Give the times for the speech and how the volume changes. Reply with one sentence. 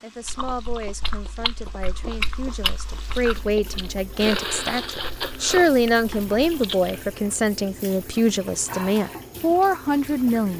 The speech can be heard from 0.0 to 10.5 s, getting louder.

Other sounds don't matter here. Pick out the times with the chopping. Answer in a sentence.
The chopping can't be heard in this clip.